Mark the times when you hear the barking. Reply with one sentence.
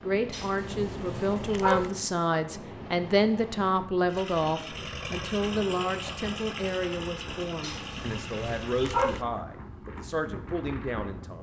You can hear the barking from 0.3 to 1.9 s and from 7.6 to 9.2 s.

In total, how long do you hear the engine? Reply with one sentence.
The engine can be heard for 5 seconds in total.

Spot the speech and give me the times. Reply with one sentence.
The speech can be heard from 0.0 to 11.3 s.